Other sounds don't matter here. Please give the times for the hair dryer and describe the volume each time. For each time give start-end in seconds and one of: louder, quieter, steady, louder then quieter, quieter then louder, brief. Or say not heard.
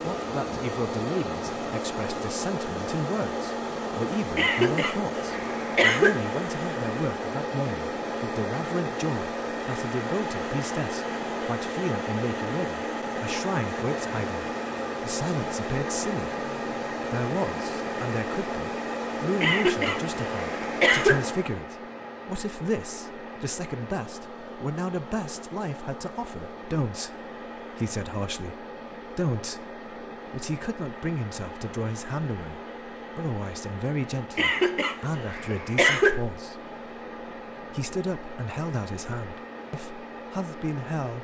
0.0-41.1 quieter.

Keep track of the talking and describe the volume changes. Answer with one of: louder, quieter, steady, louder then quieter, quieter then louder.
steady.